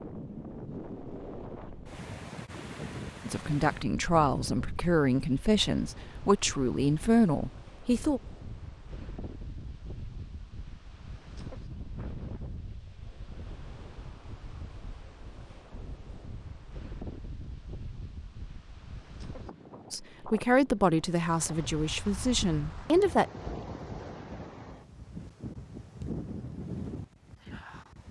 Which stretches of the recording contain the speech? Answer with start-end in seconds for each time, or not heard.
3.2-8.2, 19.9-23.2.